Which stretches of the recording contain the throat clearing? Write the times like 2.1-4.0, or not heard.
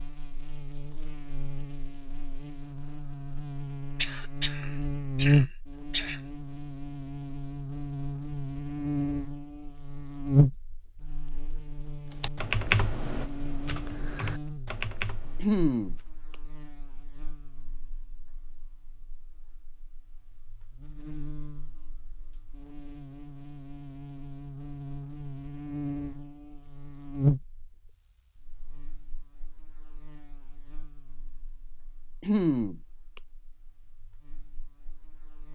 4.0-6.2, 15.3-16.4, 32.2-33.2.